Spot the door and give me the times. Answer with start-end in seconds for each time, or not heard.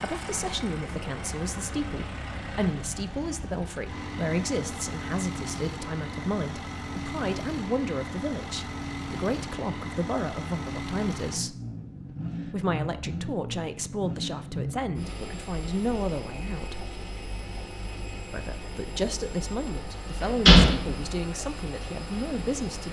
20.4-21.1.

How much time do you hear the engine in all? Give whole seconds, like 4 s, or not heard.
23 s.